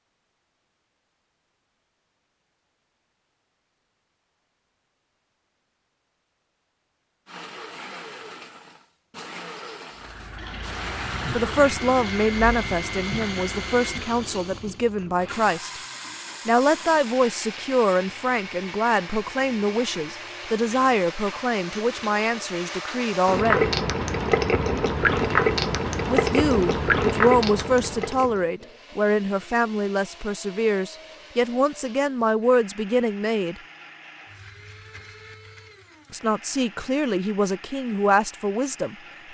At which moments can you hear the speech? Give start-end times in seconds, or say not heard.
11.3-15.8, 16.4-23.7, 26.1-33.5, 36.1-39.0.